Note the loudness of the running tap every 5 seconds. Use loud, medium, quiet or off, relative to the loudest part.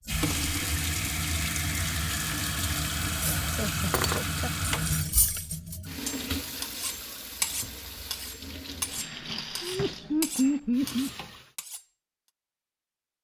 loud, medium, quiet.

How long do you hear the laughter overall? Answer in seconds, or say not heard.
3 s.